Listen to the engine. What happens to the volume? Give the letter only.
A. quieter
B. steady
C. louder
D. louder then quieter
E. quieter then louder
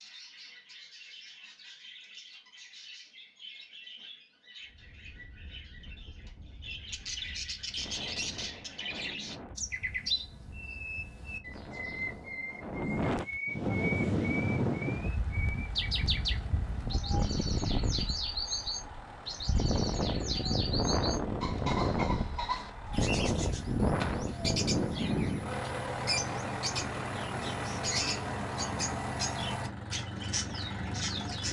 C.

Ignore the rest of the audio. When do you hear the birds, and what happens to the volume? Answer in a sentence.
You can hear the birds from 0.0 to 31.4 s, getting louder.